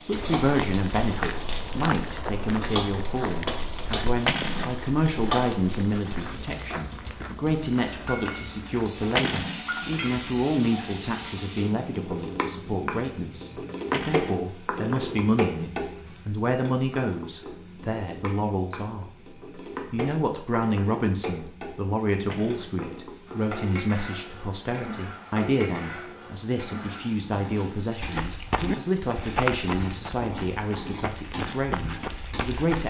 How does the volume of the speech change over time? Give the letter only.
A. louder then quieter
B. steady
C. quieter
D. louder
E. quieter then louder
B.